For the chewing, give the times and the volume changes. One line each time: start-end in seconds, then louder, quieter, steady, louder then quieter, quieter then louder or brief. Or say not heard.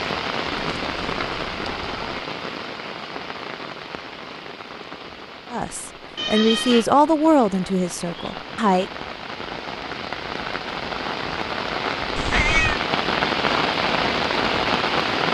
not heard.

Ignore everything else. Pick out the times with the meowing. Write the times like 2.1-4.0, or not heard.
0.6-2.2, 6.2-6.9, 12.2-12.8.